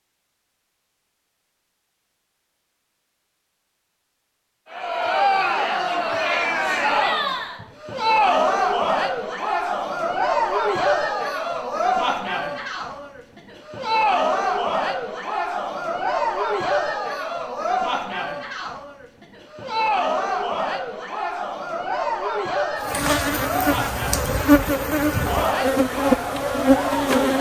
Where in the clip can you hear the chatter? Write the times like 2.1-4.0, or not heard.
4.7-27.3.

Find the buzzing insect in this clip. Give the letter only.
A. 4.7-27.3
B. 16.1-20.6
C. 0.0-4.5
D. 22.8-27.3
D.